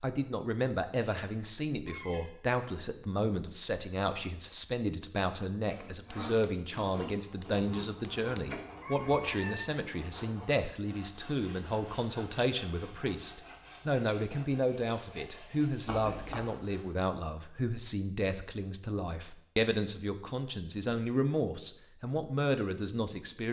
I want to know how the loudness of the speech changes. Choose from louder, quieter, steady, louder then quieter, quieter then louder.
steady.